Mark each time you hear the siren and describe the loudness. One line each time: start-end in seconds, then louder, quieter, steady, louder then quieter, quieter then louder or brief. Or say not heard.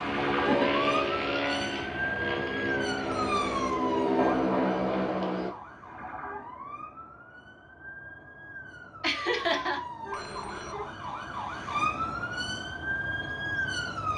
0.0-14.1 quieter then louder.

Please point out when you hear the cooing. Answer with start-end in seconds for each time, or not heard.
not heard.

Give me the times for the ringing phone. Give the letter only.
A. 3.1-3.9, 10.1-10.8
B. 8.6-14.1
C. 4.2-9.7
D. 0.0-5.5
A.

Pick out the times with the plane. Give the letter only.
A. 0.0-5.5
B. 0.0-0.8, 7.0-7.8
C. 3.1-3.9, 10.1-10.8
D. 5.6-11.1
A.